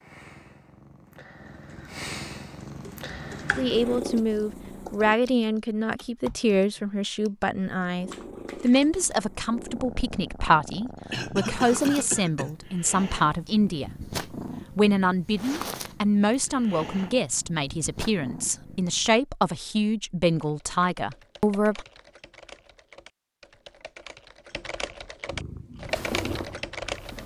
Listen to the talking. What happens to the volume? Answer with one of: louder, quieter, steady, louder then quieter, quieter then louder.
steady.